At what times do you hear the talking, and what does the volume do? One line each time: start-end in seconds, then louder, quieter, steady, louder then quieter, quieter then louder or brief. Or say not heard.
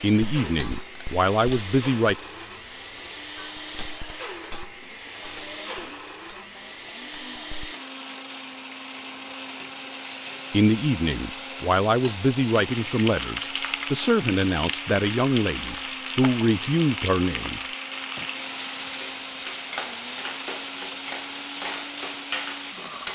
0.0-2.1 brief
10.5-17.6 steady.